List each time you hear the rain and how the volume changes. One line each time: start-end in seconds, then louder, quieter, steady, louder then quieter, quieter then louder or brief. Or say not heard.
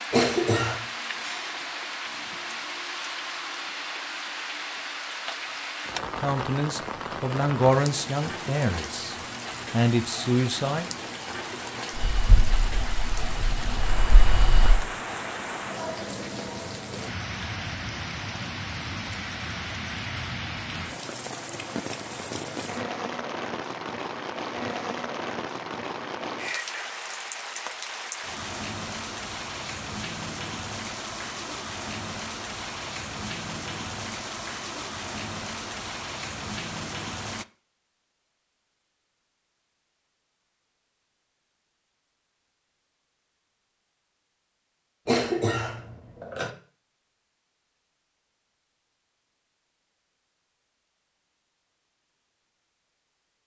0.0-37.5 steady.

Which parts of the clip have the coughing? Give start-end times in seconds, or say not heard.
0.1-0.8, 45.0-46.5.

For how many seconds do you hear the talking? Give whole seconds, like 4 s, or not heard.
5 s.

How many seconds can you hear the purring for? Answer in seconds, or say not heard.
3 s.